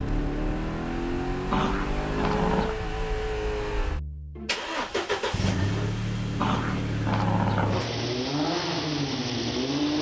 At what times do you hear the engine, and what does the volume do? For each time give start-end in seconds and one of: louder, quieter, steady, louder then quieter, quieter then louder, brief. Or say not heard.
0.0-9.9 steady.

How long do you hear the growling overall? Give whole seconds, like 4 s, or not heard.
3 s.